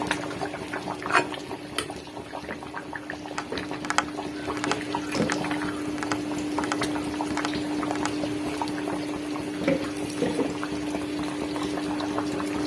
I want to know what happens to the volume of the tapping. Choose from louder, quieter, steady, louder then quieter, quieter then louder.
quieter.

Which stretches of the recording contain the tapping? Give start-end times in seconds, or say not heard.
3.4-8.2.